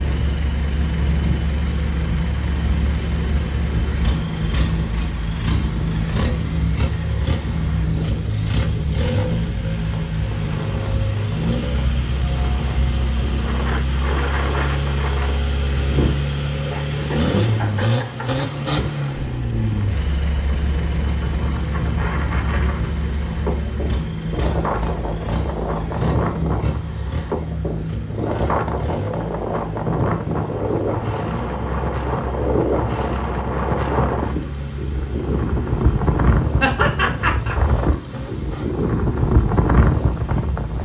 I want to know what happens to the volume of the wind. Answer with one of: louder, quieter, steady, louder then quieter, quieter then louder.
louder.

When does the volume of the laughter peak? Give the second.
37 s.